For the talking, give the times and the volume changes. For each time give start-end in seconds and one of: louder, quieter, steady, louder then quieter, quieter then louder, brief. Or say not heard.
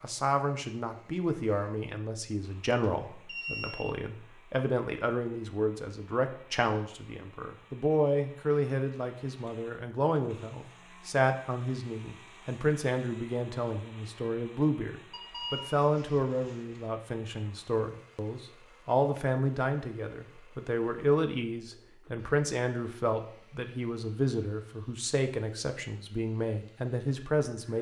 0.0-27.7 steady.